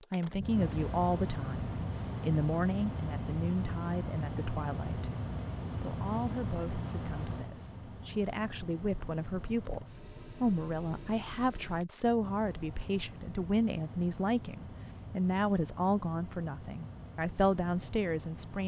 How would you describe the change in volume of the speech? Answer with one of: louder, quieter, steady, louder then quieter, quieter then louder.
quieter then louder.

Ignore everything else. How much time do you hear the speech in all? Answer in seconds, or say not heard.
18 s.